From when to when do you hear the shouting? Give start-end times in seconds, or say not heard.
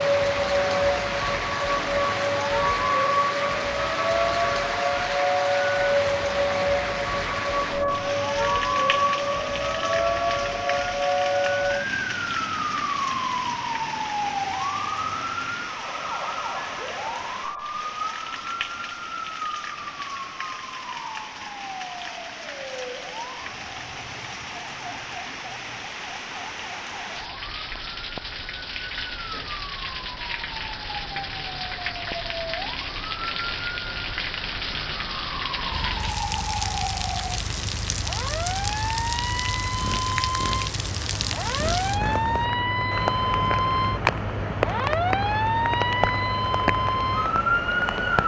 not heard.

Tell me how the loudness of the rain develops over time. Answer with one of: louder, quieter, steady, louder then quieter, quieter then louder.
quieter then louder.